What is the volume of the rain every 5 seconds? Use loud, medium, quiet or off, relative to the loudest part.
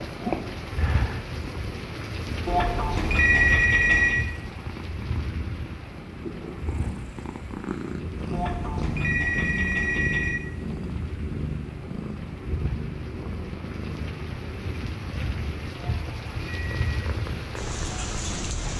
loud, medium, medium, loud.